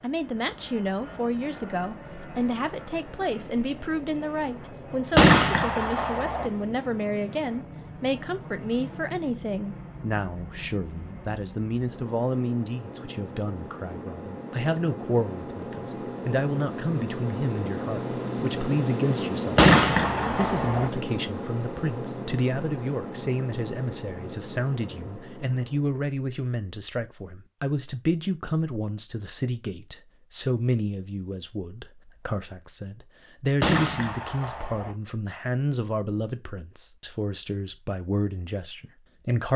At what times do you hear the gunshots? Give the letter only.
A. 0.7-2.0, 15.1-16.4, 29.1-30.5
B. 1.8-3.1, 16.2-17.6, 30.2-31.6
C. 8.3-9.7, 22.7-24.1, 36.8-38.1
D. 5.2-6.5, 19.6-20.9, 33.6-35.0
D.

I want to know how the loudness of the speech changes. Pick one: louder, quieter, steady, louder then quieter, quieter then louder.
steady.